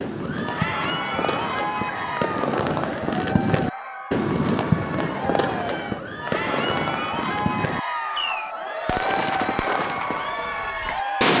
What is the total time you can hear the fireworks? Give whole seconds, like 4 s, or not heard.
11 s.